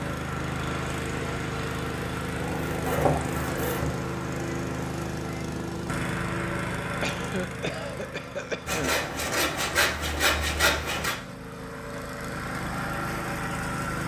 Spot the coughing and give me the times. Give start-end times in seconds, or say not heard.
7.0-8.9.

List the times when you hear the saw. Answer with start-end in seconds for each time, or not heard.
2.4-4.0, 8.7-11.2.